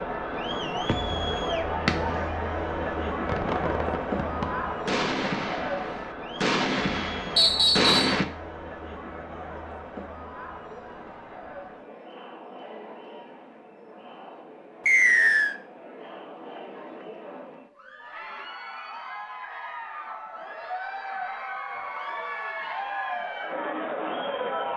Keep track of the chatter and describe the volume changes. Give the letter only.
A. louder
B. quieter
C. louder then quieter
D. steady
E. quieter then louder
E.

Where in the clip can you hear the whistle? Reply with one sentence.
The whistle can be heard from 7.3 to 8.2 s and from 14.8 to 15.6 s.